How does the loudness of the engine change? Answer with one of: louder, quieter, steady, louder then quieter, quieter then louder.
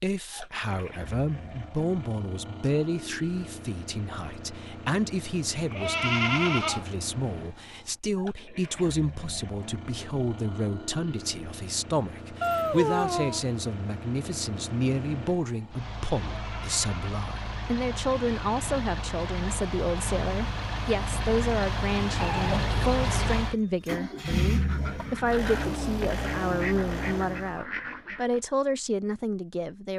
louder.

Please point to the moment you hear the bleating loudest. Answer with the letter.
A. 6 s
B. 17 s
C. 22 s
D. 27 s
A.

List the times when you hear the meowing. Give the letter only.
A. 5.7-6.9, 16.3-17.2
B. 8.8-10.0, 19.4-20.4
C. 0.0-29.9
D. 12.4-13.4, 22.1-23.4
D.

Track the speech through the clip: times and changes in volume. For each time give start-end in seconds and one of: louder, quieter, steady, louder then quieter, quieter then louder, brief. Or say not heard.
0.0-29.9 steady.